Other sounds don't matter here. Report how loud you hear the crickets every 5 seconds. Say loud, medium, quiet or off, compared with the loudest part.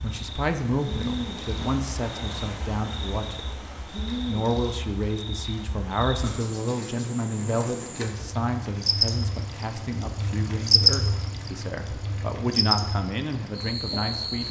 medium, medium, loud.